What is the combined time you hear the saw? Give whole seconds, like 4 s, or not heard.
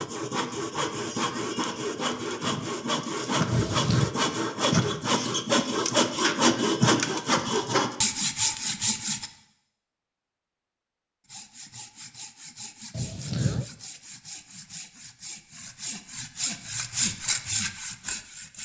17 s.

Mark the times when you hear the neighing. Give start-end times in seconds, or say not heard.
3.5-4.1, 12.9-13.7.